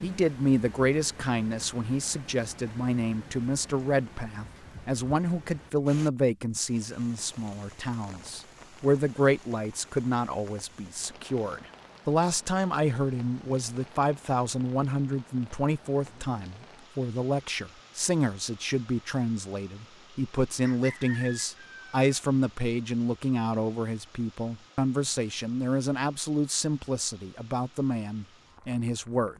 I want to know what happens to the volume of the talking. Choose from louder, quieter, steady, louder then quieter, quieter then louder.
steady.